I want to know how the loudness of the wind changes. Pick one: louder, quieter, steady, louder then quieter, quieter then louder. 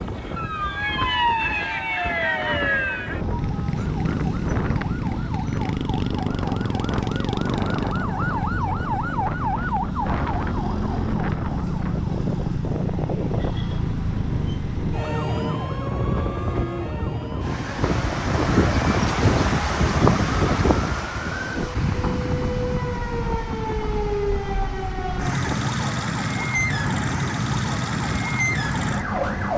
louder then quieter.